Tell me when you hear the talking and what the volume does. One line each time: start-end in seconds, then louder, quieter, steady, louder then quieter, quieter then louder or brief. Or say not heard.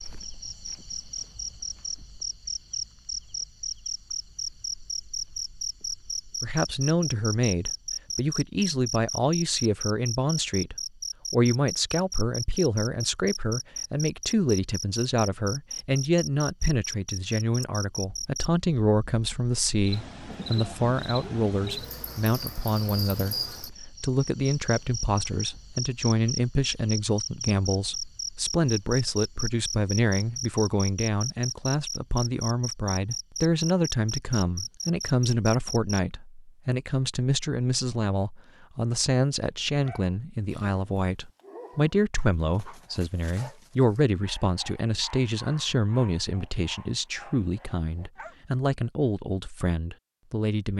6.4-50.7 steady.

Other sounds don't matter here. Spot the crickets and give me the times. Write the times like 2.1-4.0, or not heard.
0.0-36.0.